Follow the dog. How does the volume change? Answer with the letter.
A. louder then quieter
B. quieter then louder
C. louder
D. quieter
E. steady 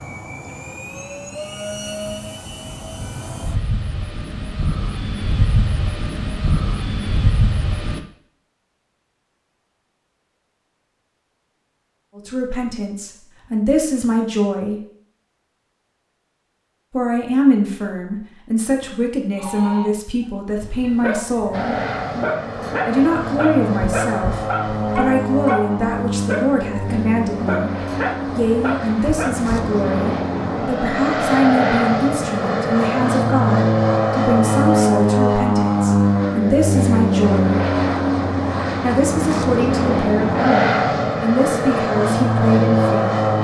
E.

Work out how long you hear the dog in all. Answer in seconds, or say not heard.
9 s.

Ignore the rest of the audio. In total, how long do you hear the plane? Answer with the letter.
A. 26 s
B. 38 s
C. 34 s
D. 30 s
D.